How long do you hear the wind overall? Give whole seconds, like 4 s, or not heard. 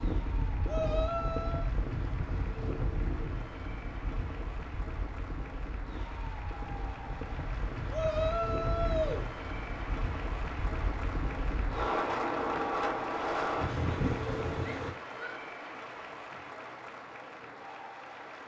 15 s.